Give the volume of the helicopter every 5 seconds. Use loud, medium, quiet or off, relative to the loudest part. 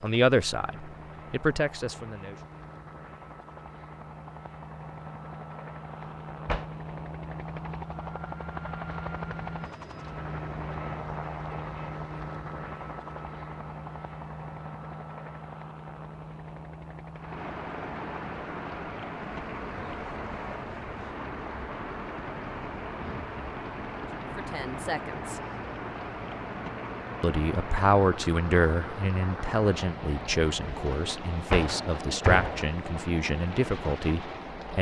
medium, loud, loud, medium, medium, medium, medium.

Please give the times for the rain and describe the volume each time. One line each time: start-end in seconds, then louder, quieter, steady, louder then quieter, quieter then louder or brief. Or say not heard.
17.1-34.7 steady.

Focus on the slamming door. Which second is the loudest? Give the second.
32 s.